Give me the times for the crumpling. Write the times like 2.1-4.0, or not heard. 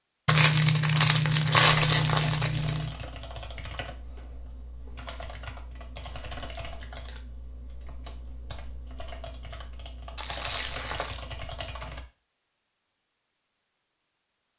0.2-3.0, 6.0-7.2, 10.2-11.2.